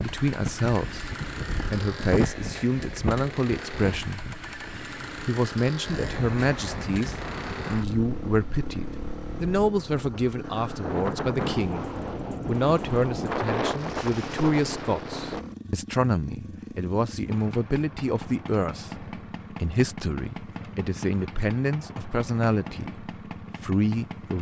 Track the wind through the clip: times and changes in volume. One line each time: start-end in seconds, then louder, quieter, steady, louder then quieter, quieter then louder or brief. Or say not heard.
0.0-15.4 quieter then louder.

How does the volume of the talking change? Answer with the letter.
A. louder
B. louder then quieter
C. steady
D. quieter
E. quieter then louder
C.